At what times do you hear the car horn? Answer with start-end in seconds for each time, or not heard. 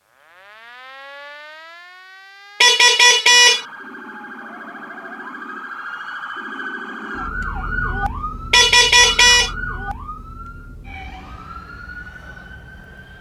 2.6-3.6, 8.5-9.5.